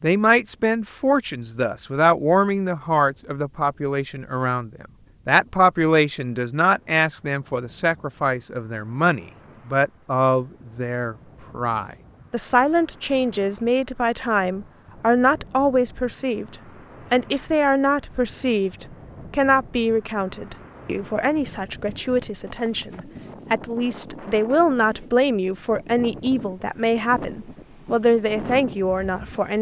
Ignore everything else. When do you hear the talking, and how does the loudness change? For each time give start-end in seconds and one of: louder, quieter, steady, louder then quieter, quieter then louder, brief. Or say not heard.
0.0-29.5 steady.